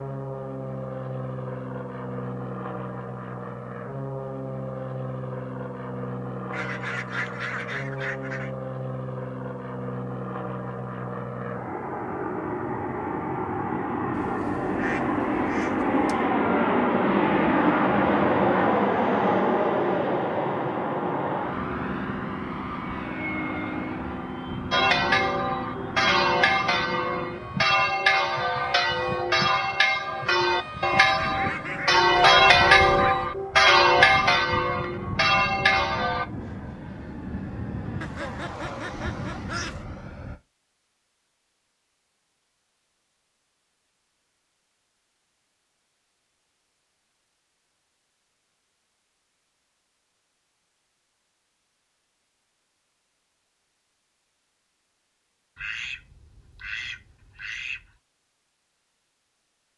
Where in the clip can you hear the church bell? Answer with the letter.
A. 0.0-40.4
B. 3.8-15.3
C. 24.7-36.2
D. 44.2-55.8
C.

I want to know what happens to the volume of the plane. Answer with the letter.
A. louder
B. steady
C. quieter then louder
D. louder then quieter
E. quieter
D.